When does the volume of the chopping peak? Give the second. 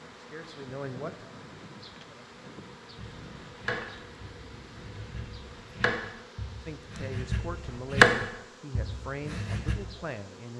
8 s.